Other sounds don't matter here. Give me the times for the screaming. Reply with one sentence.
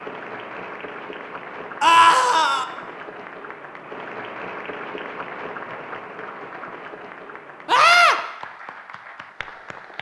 The screaming can be heard from 1.8 to 2.6 s and from 7.7 to 8.2 s.